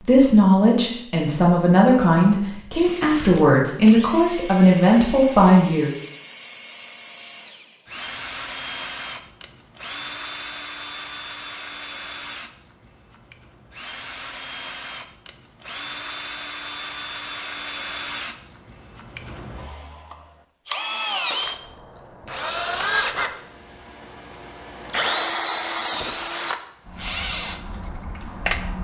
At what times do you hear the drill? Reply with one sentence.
The drill can be heard from 2.7 to 28.8 s.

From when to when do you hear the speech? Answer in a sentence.
The speech can be heard from 0.0 to 6.0 s.